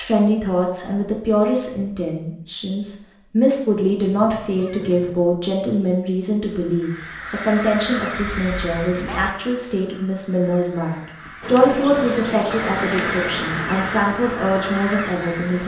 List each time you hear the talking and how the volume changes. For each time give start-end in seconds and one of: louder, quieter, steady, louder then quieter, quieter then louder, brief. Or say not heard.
0.0-15.6 steady.